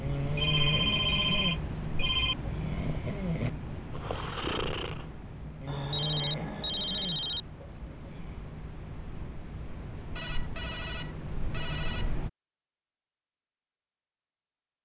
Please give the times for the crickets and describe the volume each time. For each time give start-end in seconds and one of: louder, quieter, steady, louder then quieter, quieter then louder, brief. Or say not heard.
0.0-12.3 quieter then louder.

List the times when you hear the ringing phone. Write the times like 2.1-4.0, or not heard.
0.3-2.4, 5.7-7.4, 10.2-12.1.